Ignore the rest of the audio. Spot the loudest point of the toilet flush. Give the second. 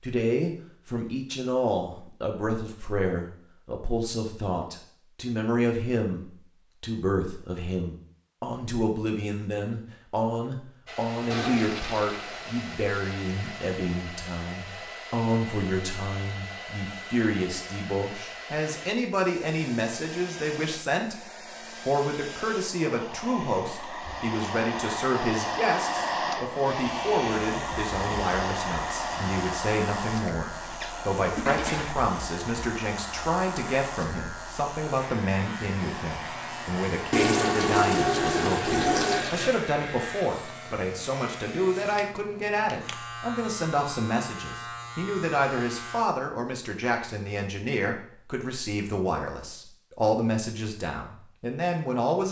38 s.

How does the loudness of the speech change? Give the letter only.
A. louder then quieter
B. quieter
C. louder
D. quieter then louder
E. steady
E.